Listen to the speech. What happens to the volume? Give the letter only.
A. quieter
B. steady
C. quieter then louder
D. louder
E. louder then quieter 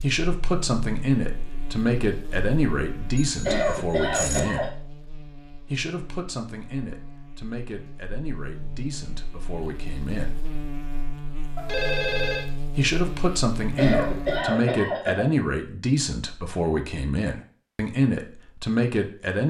C.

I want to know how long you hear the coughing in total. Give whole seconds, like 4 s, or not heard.
3 s.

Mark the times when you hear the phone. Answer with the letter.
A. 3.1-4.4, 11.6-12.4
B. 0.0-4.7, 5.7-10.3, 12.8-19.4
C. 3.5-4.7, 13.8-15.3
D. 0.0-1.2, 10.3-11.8
A.